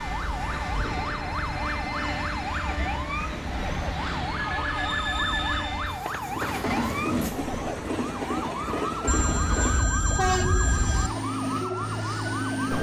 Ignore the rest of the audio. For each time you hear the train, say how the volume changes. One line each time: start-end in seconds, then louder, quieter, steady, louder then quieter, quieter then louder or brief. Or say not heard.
0.0-12.7 steady.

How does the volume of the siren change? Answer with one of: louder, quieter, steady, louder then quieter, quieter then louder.
steady.